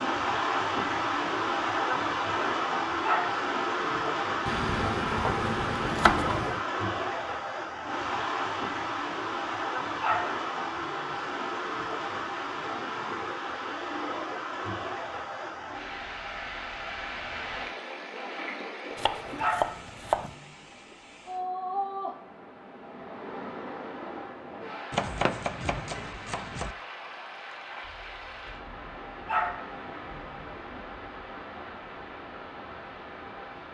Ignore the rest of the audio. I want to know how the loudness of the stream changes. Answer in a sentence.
The loudness of the stream goes down.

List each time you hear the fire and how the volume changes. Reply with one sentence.
The fire can't be heard in this clip.